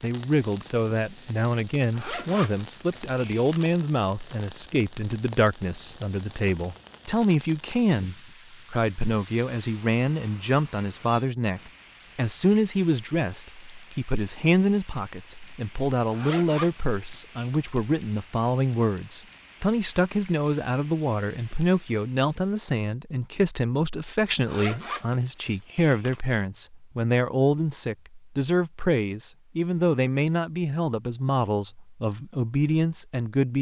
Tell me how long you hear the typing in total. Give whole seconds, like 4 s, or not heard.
not heard.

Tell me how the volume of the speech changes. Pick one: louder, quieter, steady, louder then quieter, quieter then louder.
steady.